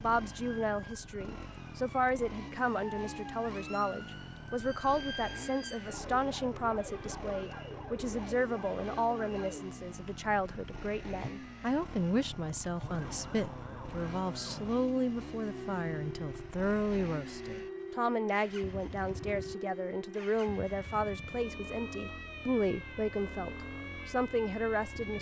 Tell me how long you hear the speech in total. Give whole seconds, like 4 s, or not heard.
25 s.